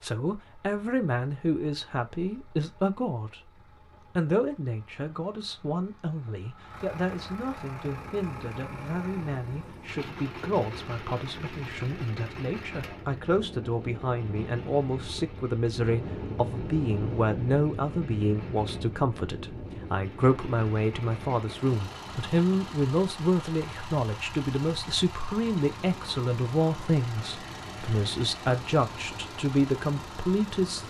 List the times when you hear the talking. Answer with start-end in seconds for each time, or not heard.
0.0-3.5, 4.2-30.8.